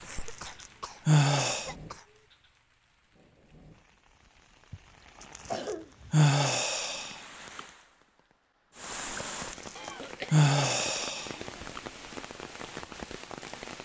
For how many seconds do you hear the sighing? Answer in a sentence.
You can hear the sighing for 6 seconds altogether.